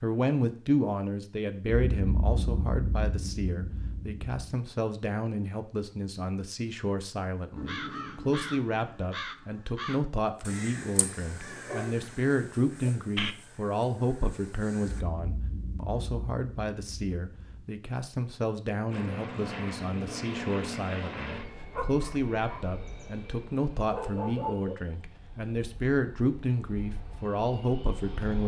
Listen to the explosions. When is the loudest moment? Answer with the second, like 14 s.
2 s.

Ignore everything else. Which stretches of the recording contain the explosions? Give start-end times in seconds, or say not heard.
1.6-4.5, 14.8-17.8.